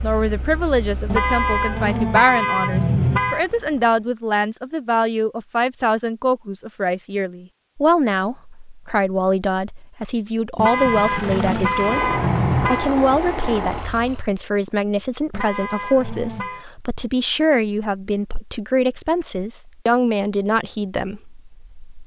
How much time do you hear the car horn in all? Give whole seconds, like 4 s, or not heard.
6 s.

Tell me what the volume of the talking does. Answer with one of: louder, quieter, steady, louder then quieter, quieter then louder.
steady.